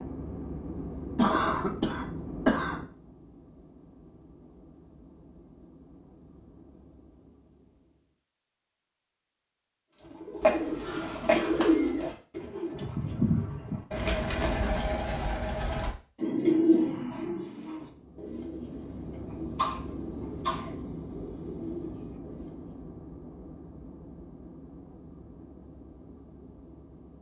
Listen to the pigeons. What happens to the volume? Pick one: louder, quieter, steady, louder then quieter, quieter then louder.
quieter.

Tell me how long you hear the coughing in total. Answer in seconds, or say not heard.
4 s.